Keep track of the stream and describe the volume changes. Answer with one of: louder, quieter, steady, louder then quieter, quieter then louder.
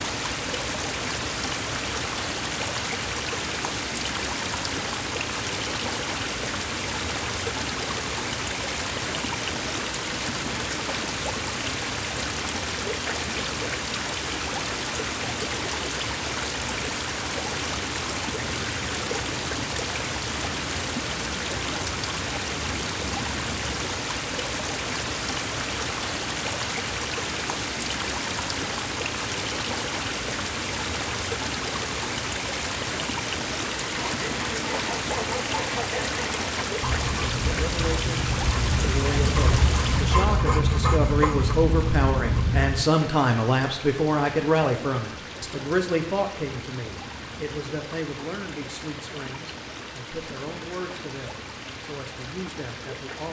quieter.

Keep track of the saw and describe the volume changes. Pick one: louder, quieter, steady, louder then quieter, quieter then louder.
louder.